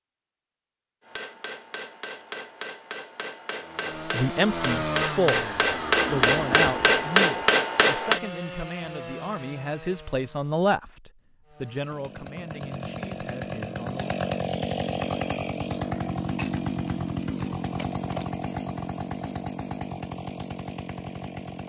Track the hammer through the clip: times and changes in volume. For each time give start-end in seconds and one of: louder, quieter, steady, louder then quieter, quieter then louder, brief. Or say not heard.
1.1-8.2 louder.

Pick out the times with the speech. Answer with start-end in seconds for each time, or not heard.
4.0-14.1.